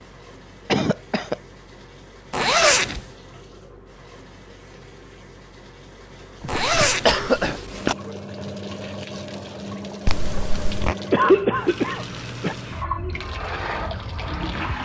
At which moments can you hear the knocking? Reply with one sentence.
The knocking can't be heard in this clip.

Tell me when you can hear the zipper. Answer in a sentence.
You can hear the zipper from 2.3 to 3.0 s, from 6.5 to 8.0 s and from 10.1 to 10.9 s.